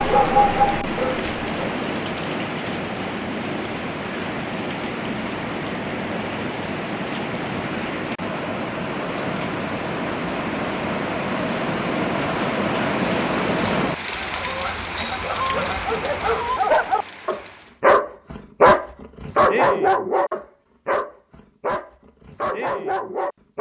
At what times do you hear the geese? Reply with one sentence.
You can hear the geese from 14.1 to 16.6 s.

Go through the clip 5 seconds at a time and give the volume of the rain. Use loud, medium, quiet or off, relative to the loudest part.
loud, loud, loud, medium, off.